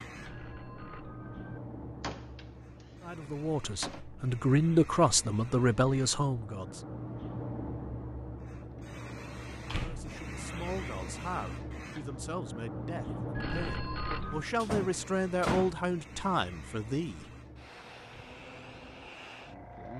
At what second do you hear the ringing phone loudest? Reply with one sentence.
The loudest moment of the ringing phone is at 14 seconds.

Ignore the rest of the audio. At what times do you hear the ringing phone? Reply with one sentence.
You can hear the ringing phone from 0.1 to 1.6 s and from 13.3 to 14.5 s.